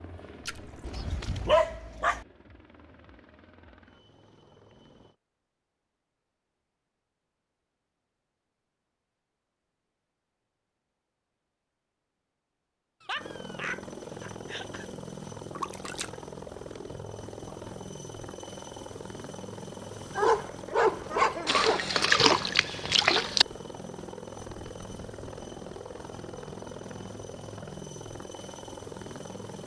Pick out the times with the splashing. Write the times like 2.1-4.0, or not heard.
0.5-0.9, 15.5-16.1, 21.4-23.4.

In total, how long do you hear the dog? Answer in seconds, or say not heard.
5 s.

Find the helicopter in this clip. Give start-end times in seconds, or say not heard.
0.0-5.2, 13.2-29.6.